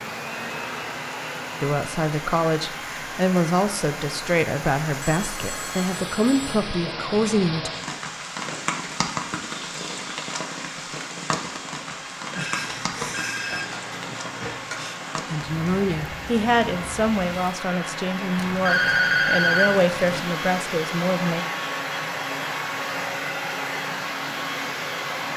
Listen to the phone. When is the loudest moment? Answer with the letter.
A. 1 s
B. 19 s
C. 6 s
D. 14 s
B.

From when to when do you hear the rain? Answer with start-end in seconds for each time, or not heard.
0.1-17.6.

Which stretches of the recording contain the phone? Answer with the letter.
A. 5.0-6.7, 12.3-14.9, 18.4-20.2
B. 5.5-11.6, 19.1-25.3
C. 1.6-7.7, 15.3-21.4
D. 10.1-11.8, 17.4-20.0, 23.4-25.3
A.